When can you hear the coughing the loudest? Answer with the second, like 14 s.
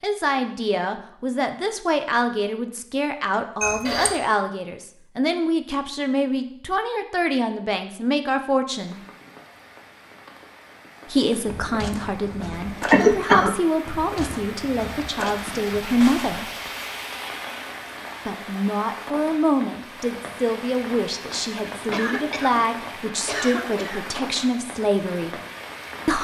13 s.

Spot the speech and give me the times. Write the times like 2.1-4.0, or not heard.
0.0-9.0, 11.1-16.5, 18.2-25.4.